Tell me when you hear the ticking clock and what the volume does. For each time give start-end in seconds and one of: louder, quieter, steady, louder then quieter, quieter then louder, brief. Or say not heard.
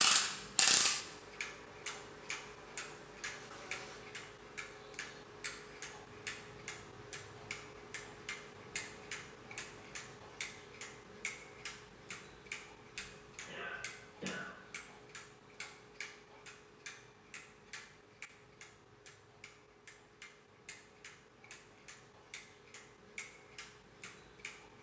0.0-24.7 quieter.